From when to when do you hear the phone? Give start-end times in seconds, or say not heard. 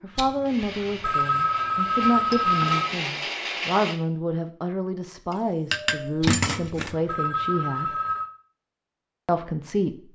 0.1-2.9, 6.2-8.2.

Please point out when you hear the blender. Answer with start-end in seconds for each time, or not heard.
0.0-4.0.